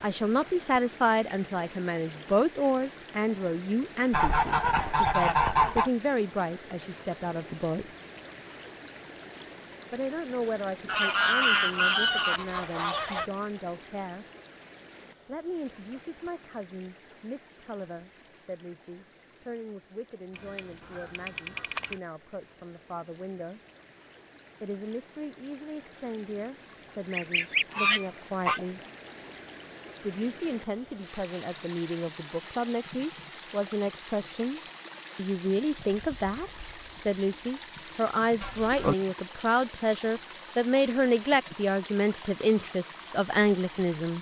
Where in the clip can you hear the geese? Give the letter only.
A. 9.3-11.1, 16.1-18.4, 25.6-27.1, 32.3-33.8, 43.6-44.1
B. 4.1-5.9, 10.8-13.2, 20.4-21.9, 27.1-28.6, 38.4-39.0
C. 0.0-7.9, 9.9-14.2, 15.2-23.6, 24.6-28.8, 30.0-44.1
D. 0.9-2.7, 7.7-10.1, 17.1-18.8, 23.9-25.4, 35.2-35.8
B.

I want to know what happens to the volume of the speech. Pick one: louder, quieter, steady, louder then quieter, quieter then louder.
quieter then louder.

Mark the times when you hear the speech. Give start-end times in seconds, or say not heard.
0.0-7.9, 9.9-14.2, 15.2-23.6, 24.6-28.8, 30.0-44.1.